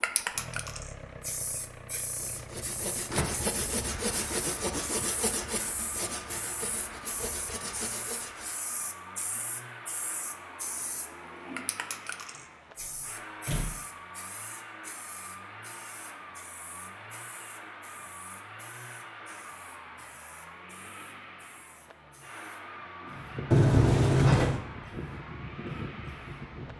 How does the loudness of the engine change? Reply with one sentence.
The volume of the engine stays about the same.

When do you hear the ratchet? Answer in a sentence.
You can't hear the ratchet here.